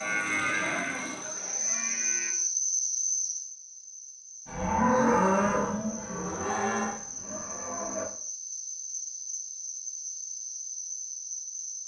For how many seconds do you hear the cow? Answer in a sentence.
You can hear the cow for 6 seconds altogether.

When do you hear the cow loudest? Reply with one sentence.
The loudest moment of the cow is at 5 seconds.